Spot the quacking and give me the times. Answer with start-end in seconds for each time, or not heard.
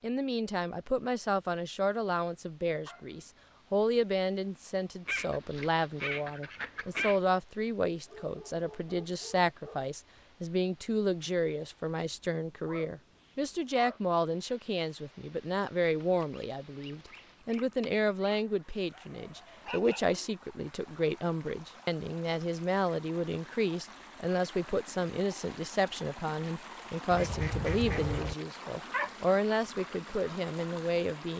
5.0-7.2, 16.0-18.4, 27.1-28.4.